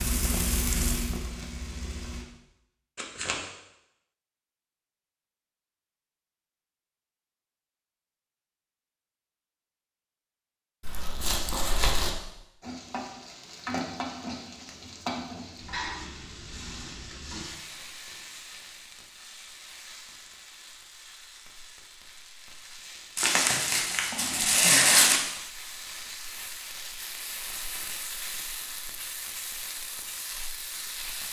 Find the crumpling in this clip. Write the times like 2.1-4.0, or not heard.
3.0-3.5, 10.8-12.1, 23.1-25.2.